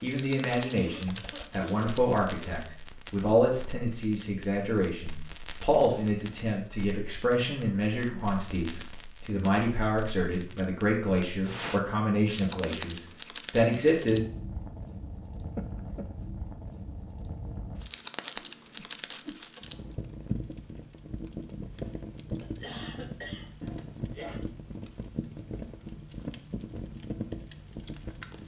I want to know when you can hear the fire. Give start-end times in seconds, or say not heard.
0.0-28.4.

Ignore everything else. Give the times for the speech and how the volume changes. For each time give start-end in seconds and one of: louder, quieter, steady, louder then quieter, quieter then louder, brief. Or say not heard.
0.0-14.2 steady.